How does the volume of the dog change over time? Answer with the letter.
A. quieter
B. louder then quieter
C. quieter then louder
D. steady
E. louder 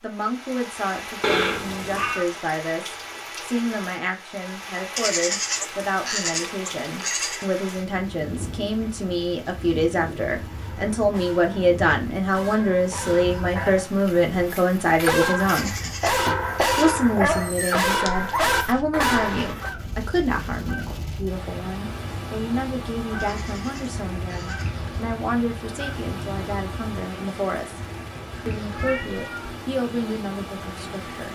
E.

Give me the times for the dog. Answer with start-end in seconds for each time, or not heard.
10.5-19.7.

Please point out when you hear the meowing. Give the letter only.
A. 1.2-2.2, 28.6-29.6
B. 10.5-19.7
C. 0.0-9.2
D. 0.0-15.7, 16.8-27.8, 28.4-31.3
A.